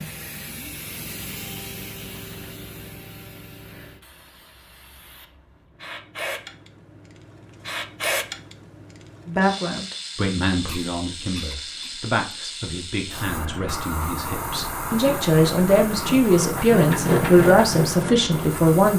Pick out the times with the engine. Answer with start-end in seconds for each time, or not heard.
14.9-18.8.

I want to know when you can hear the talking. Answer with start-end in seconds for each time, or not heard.
9.2-18.9.